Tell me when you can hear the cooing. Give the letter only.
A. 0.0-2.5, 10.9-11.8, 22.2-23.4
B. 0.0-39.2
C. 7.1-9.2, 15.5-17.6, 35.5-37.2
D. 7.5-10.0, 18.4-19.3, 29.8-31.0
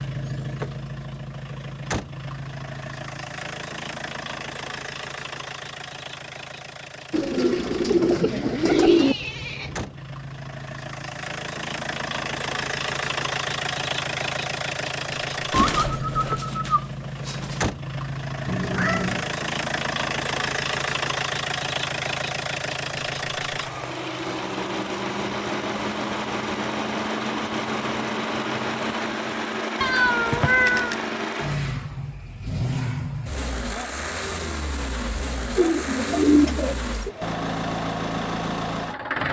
C.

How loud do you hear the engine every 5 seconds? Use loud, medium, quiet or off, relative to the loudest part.
medium, medium, loud, loud, loud, loud, loud, loud.